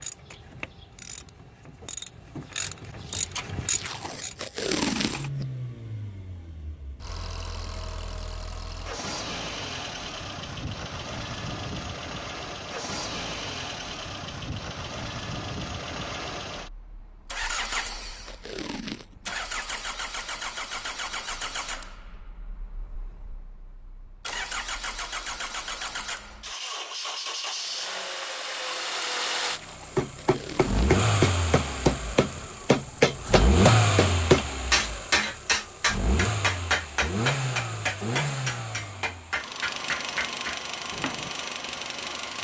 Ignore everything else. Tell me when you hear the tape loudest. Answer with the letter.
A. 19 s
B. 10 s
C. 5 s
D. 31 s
C.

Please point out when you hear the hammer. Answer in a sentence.
You can hear the hammer from 29.9 to 41.3 s.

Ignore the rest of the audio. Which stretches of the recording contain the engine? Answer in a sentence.
You can hear the engine from 4.8 to 42.3 s.